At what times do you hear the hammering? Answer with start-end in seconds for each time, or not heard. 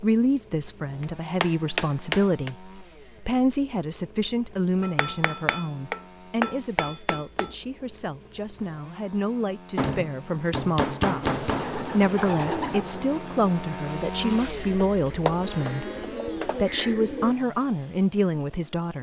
1.0-2.5, 4.8-7.5, 9.8-11.7, 14.8-16.6.